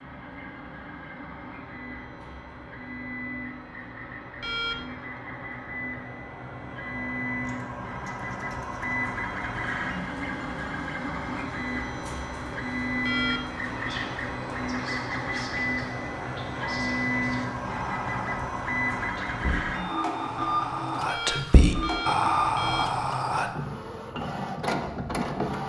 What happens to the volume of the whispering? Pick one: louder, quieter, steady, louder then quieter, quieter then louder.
louder.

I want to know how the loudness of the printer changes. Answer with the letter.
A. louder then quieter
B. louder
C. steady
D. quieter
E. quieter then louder
B.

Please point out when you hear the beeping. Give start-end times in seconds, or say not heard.
4.4-5.0, 13.0-13.7, 21.1-22.9.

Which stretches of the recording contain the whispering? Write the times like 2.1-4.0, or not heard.
13.6-23.5.